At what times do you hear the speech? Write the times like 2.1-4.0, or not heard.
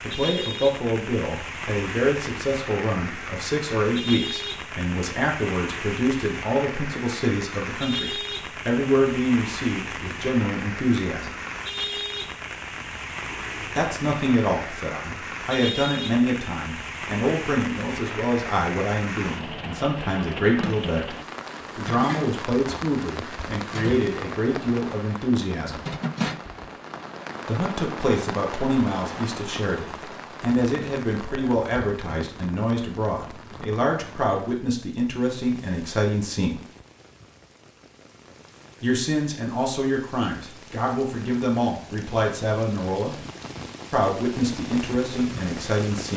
0.0-11.4, 13.7-21.1, 21.8-25.9, 27.4-36.6, 38.8-43.1, 43.9-46.1.